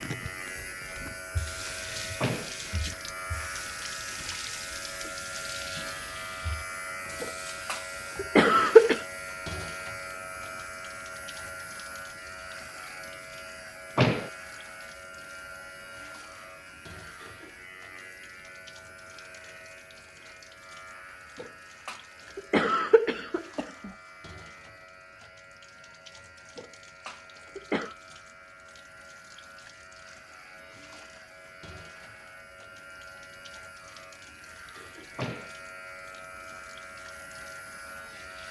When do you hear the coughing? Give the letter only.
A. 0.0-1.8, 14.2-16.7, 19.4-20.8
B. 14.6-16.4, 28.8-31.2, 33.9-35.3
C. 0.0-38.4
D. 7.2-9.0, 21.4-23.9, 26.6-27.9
D.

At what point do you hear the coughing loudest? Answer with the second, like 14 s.
9 s.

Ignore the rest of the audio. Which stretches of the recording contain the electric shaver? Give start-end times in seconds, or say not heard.
0.0-38.4.